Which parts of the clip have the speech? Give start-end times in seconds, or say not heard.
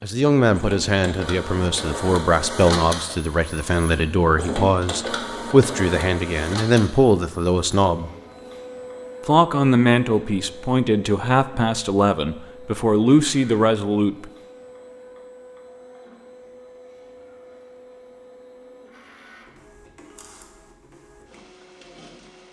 0.0-8.1, 9.2-14.3.